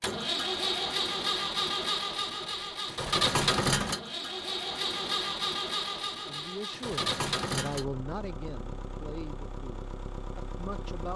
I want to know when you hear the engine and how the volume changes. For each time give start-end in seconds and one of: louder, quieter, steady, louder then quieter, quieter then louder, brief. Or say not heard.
0.0-11.1 quieter.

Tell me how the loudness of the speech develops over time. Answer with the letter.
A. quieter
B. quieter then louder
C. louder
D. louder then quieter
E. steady
D.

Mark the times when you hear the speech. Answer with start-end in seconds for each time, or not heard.
6.2-11.1.